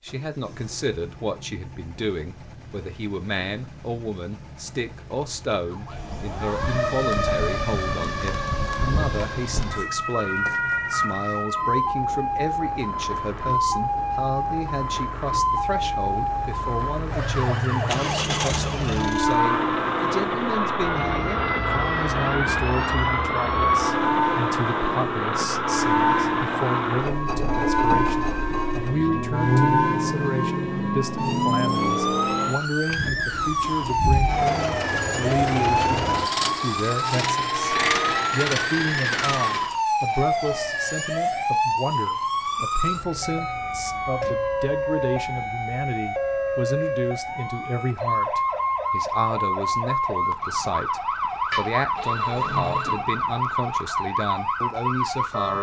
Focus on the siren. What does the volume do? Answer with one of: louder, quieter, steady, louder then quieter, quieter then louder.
steady.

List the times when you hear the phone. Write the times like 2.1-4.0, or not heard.
51.5-53.0.